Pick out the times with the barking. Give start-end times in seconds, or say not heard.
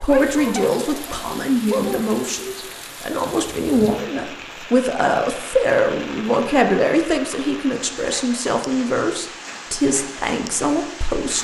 0.0-2.0.